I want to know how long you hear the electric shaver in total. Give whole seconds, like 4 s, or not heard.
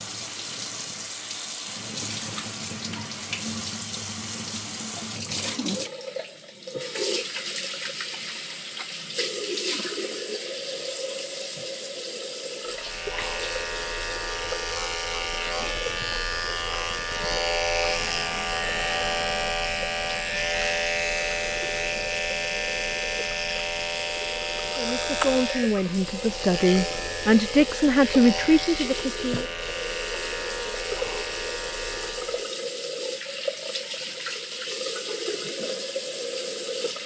20 s.